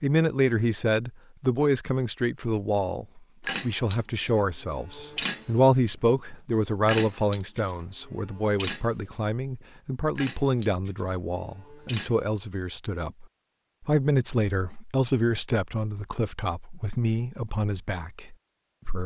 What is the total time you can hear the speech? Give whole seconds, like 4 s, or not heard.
19 s.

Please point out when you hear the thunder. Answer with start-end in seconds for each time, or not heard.
not heard.